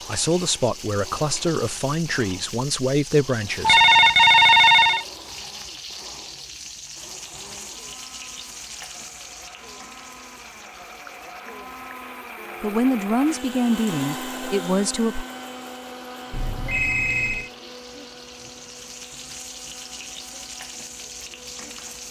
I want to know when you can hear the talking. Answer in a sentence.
You can hear the talking from 0.1 to 3.8 s and from 12.6 to 15.2 s.